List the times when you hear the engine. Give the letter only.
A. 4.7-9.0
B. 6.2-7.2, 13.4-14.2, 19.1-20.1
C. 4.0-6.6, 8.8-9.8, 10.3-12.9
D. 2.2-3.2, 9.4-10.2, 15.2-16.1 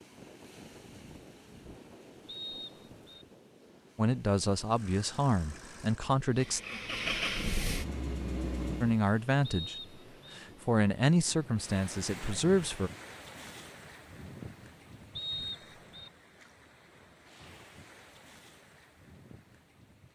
A.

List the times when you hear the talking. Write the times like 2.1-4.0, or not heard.
4.0-6.6, 8.8-9.8, 10.3-12.9.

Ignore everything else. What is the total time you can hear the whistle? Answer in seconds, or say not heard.
3 s.